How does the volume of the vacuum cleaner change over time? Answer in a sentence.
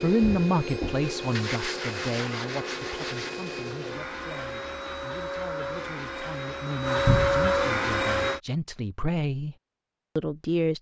The loudness of the vacuum cleaner goes up.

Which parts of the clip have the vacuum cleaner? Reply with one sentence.
You can hear the vacuum cleaner from 0.0 to 8.4 s.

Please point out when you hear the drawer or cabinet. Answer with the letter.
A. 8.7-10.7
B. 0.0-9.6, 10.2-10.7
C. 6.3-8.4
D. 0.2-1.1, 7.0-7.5
D.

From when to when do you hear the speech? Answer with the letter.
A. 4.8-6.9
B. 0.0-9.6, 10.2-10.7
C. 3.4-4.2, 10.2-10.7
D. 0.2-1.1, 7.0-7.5
B.